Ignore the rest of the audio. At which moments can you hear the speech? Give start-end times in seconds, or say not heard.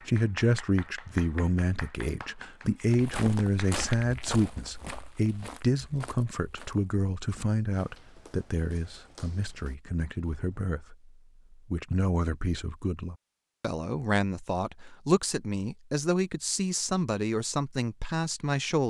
0.1-11.1, 11.7-18.8.